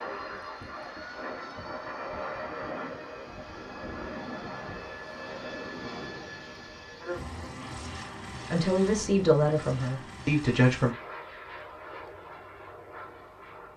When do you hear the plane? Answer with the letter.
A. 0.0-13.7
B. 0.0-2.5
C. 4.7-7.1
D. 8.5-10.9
A.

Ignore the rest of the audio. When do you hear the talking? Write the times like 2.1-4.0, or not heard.
8.5-10.9.